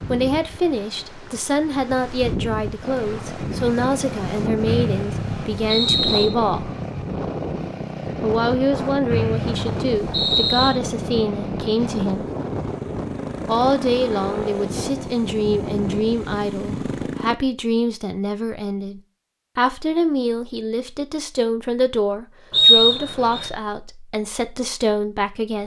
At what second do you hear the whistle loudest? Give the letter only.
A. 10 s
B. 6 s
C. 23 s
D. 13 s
C.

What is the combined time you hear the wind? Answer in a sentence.
You can hear the wind for 17 seconds altogether.